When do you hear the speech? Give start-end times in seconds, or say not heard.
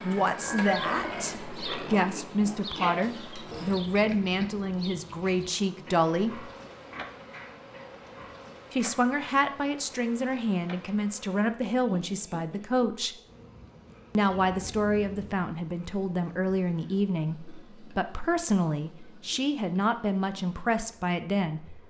0.0-6.5, 8.7-13.2, 14.2-21.8.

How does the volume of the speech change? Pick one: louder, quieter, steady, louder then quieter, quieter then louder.
steady.